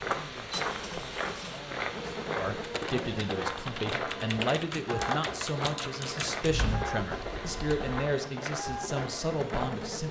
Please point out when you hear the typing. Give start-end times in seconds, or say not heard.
2.6-8.0.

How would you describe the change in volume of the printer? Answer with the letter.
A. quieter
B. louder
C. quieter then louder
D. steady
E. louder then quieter
D.